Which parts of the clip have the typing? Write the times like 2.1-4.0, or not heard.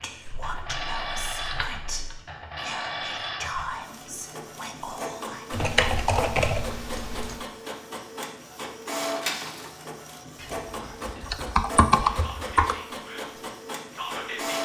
0.2-2.2, 5.5-7.4, 10.4-12.8.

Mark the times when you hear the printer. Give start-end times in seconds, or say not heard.
0.0-14.5.